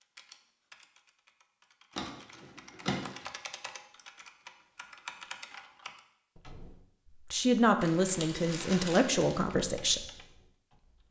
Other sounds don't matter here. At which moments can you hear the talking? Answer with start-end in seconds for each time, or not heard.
7.3-10.0.